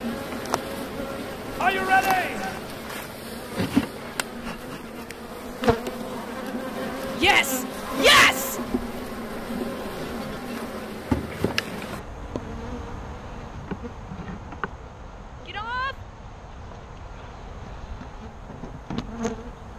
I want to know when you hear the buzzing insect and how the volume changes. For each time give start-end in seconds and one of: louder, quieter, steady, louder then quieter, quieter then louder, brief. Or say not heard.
0.0-19.7 quieter.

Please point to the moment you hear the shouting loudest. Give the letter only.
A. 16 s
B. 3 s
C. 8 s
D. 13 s
C.